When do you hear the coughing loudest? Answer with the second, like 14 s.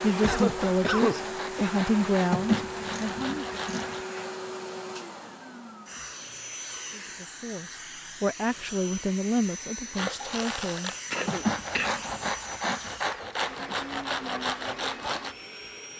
1 s.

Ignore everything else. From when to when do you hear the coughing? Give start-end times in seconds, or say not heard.
0.2-1.8, 11.1-11.9.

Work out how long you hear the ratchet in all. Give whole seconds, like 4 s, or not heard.
3 s.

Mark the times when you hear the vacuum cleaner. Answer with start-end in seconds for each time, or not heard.
0.0-15.9.